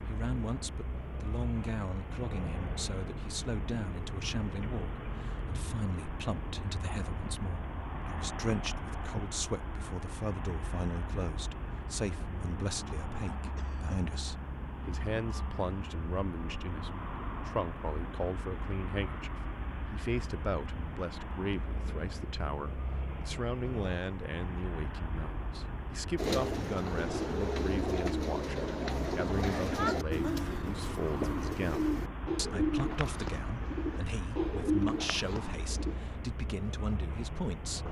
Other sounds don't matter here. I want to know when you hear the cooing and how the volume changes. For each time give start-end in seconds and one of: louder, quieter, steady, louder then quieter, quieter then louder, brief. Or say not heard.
26.1-36.0 steady.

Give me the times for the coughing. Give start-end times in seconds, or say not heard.
13.6-14.2, 29.6-30.8.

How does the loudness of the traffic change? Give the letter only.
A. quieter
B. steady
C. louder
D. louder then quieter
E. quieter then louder
B.